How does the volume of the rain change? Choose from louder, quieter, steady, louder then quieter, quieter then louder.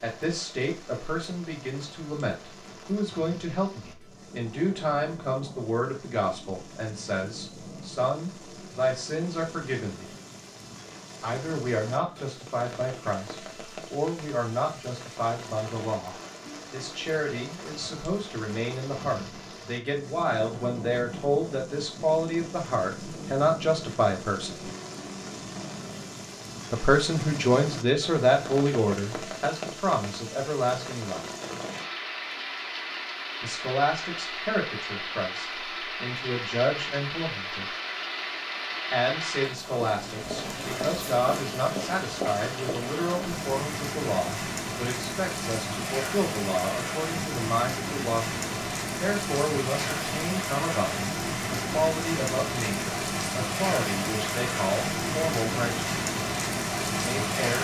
louder.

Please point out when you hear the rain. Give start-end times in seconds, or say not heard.
0.0-57.5.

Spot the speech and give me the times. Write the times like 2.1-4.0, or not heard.
0.0-10.1, 11.2-24.6, 26.7-31.2, 33.4-37.6, 38.9-55.9, 56.9-57.5.